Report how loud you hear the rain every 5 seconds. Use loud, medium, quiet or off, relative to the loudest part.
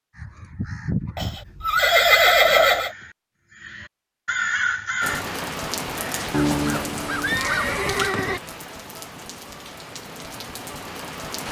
off, loud, loud.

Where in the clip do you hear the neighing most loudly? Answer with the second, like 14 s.
2 s.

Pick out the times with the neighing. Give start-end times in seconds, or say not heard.
1.1-2.9, 6.5-8.4.